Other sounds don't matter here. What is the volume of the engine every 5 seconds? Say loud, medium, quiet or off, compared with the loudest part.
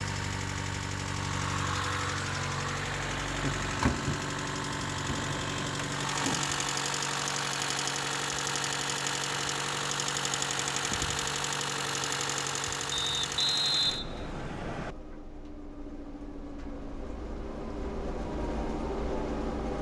loud, loud, loud, medium.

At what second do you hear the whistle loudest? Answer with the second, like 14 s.
14 s.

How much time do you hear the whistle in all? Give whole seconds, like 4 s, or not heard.
2 s.